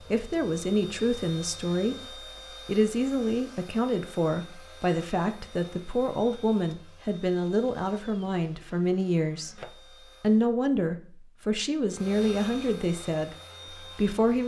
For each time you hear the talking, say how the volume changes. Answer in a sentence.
You can hear the talking from 0.1 to 9.6 s, at a steady volume; and from 10.2 to 14.4 s, getting quieter.